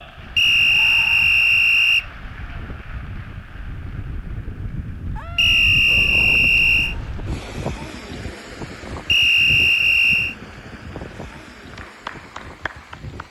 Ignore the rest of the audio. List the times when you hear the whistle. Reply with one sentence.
The whistle can be heard from 0.3 to 2.0 s, from 5.3 to 7.0 s and from 9.1 to 10.3 s.